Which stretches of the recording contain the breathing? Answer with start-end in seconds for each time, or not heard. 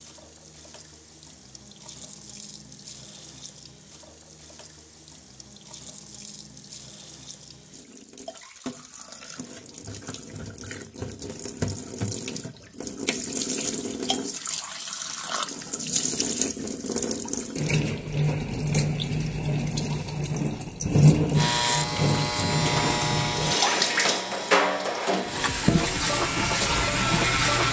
not heard.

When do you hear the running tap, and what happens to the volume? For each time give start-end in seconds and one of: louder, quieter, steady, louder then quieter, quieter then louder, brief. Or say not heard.
0.0-27.6 louder.